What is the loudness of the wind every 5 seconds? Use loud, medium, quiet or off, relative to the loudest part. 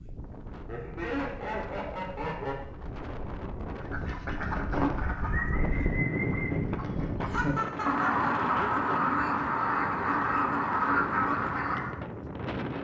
medium, loud, loud.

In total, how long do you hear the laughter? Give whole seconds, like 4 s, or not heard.
3 s.